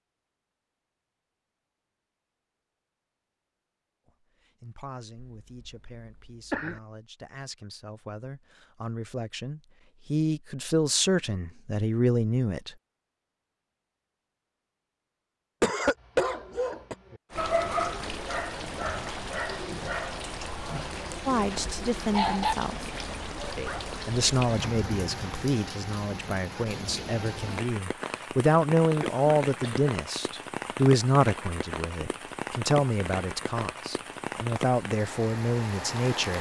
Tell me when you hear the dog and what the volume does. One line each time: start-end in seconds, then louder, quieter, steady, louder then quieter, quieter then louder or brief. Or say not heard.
16.1-23.8 quieter then louder.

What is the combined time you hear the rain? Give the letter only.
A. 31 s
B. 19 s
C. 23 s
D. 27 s
B.